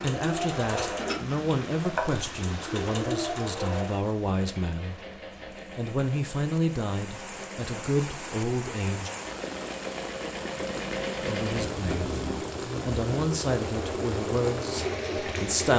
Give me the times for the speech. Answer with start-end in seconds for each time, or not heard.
0.0-5.0, 5.8-9.1, 11.2-15.7.